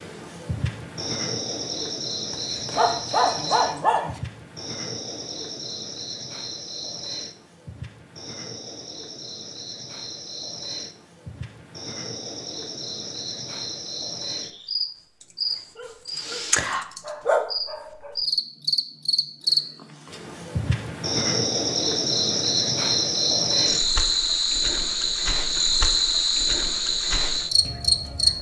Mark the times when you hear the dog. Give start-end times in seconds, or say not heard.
2.3-4.2, 15.8-18.1.